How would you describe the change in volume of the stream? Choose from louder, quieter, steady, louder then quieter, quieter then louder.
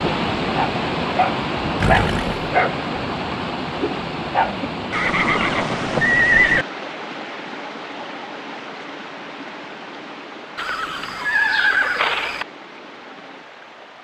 quieter.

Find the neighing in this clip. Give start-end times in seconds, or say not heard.
1.8-2.5, 4.9-6.7, 10.6-12.4.